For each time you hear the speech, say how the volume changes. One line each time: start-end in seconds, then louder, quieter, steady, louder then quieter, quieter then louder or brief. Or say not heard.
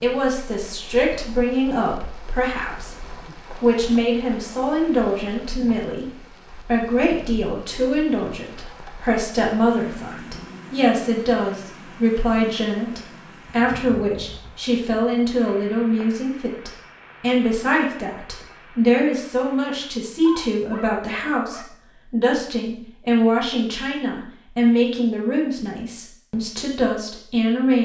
0.0-27.8 steady.